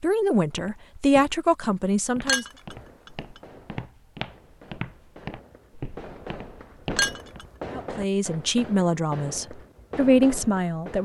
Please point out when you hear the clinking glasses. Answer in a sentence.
You can hear the clinking glasses from 2.2 to 3.1 s and from 7.0 to 7.5 s.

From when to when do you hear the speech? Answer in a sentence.
The speech can be heard from 0.0 to 2.5 s and from 7.7 to 11.0 s.